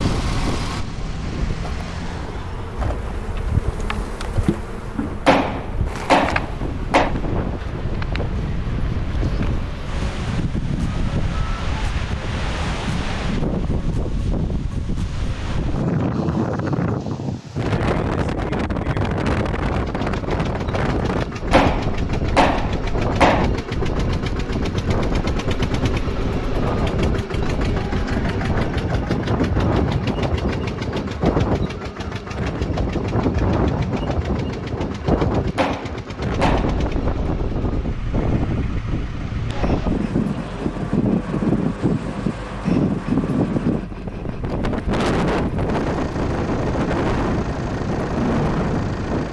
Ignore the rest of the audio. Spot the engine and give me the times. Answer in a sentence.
You can hear the engine from 0.0 to 2.5 s and from 19.6 to 49.2 s.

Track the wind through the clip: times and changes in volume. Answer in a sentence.
You can hear the wind from 0.0 to 49.2 s, getting louder.